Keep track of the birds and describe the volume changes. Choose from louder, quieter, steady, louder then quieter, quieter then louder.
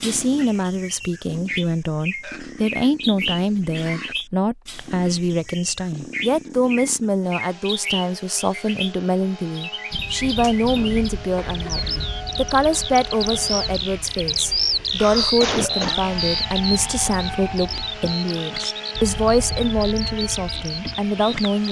louder then quieter.